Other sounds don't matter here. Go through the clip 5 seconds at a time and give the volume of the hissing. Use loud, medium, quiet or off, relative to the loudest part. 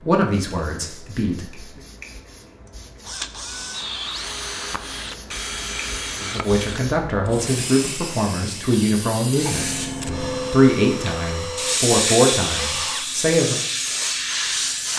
quiet, medium, loud.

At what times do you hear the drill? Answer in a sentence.
You can hear the drill from 2.6 to 14.9 s.